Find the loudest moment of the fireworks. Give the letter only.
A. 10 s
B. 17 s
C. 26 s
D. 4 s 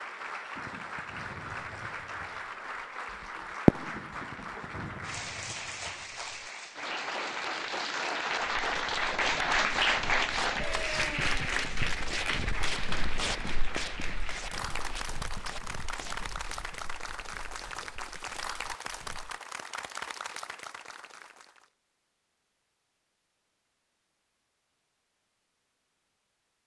D.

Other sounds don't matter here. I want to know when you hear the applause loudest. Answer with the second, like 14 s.
10 s.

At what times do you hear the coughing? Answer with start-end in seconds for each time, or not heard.
not heard.